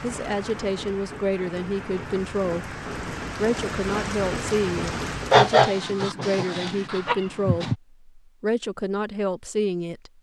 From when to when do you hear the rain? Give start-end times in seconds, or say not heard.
0.0-5.5.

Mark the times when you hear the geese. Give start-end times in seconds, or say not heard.
5.3-7.8.